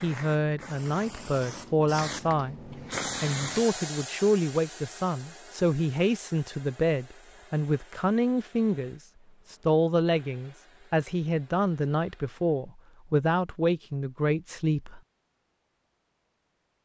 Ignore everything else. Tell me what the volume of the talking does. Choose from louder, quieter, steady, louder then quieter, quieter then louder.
steady.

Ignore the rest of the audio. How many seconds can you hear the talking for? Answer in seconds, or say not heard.
15 s.